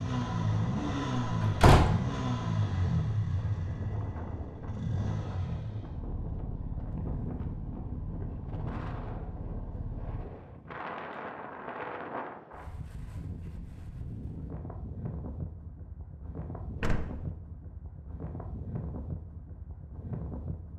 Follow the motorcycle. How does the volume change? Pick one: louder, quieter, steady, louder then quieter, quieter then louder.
quieter.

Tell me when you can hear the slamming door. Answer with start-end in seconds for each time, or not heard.
1.2-1.9, 16.8-17.2.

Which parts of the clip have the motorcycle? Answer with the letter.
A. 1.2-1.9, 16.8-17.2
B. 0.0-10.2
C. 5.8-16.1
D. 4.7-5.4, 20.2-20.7
B.